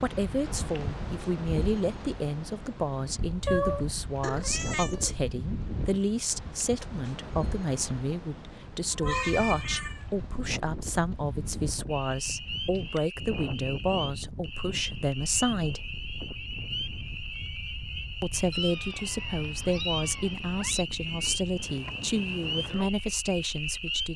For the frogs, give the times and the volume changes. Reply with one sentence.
The frogs can be heard from 11.9 to 24.1 s, at a steady volume.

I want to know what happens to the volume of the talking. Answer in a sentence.
The volume of the talking stays about the same.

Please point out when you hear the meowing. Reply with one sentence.
You can hear the meowing from 3.5 to 5.2 s, from 8.9 to 10.1 s and from 18.5 to 20.9 s.